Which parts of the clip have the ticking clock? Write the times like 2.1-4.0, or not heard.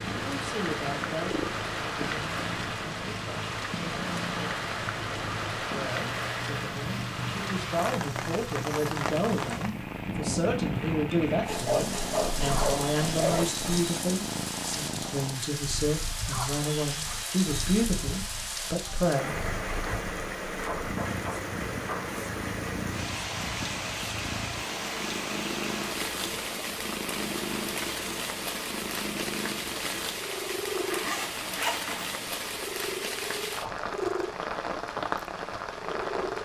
not heard.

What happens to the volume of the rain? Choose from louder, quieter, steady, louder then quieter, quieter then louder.
steady.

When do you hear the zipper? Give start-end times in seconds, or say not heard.
11.4-13.7, 30.8-32.1.